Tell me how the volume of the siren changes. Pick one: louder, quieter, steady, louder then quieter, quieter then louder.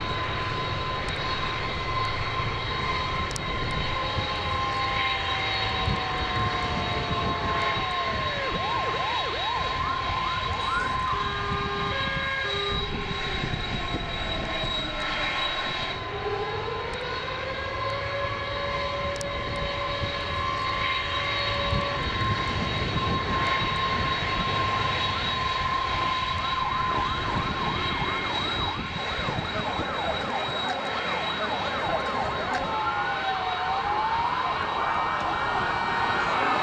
louder.